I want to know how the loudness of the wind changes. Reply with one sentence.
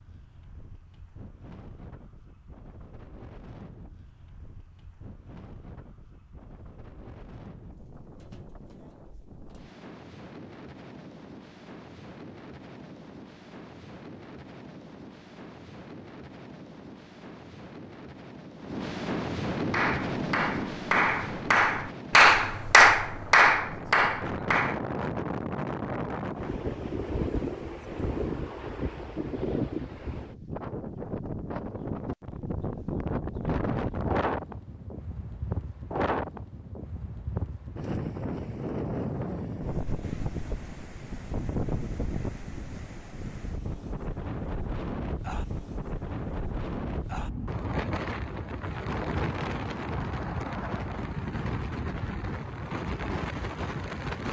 The volume of the wind goes up.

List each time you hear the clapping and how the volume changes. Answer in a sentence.
The clapping can be heard from 19.7 to 24.8 s, getting louder then quieter.